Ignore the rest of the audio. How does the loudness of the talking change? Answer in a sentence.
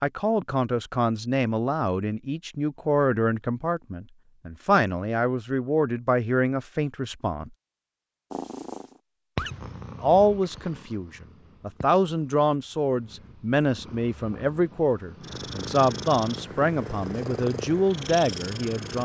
The loudness of the talking stays about the same.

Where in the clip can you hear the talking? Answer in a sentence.
The talking can be heard from 0.0 to 7.5 s and from 10.0 to 19.0 s.